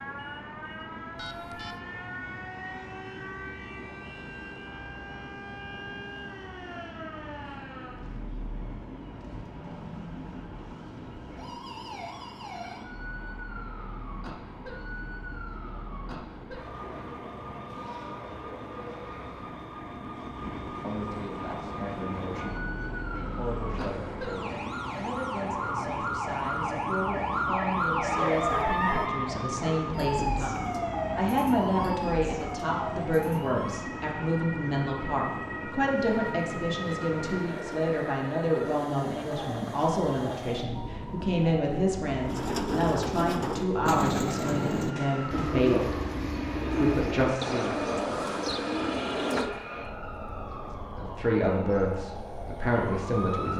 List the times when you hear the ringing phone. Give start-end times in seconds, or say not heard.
1.1-1.8.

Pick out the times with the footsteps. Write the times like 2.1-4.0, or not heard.
not heard.